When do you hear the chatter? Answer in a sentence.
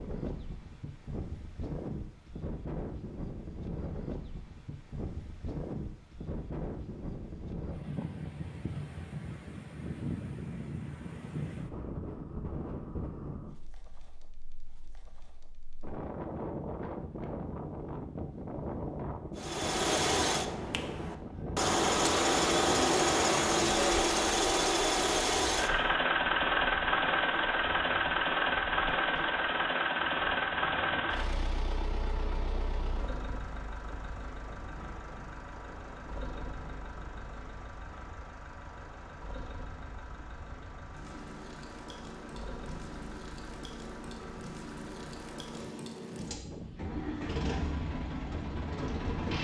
The chatter can't be heard in this clip.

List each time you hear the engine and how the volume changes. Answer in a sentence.
You can hear the engine from 19.4 to 49.4 s, getting quieter then louder.